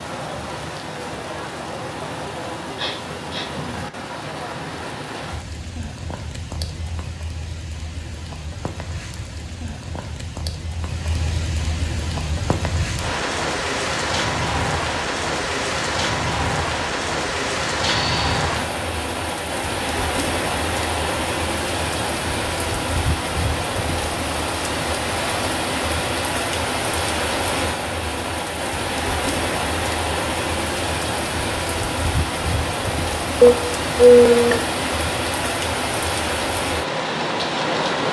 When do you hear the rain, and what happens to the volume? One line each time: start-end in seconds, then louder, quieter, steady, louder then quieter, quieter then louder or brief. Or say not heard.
0.0-38.0 louder.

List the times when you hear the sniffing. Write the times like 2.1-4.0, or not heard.
2.8-3.5, 17.8-18.4, 33.4-34.6.